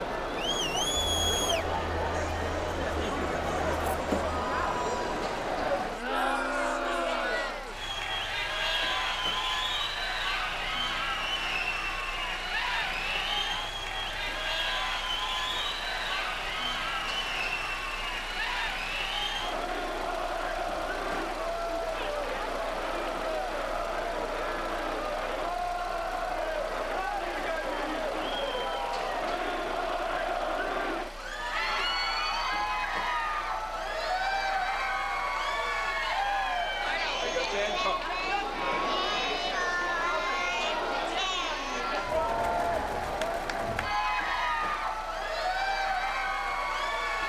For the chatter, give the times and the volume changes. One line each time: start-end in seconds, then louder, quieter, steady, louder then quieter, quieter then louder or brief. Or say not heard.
0.0-47.2 steady.